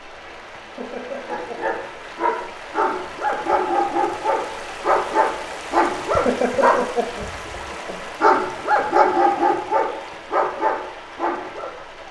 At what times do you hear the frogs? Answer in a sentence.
You can't hear the frogs here.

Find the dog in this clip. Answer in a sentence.
You can hear the dog from 1.2 to 7.6 s and from 8.2 to 11.7 s.